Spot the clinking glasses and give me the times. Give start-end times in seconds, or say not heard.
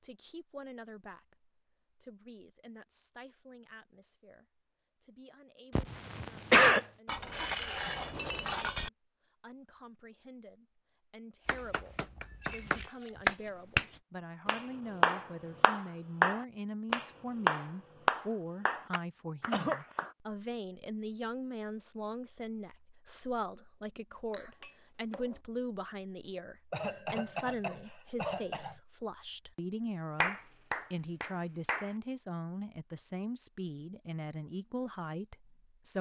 7.0-8.9, 12.2-13.4, 24.3-25.4.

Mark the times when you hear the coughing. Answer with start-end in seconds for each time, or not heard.
5.8-6.8, 19.5-20.1, 26.7-28.8.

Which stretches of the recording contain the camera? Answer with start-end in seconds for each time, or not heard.
not heard.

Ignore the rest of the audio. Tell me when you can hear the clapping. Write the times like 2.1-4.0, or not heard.
11.4-20.1, 30.2-31.9.